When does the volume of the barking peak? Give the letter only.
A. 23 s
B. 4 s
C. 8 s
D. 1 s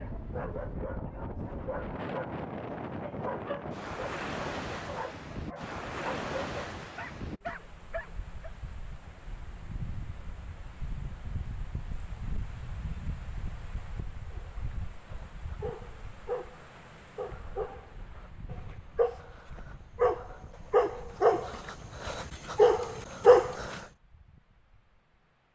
A.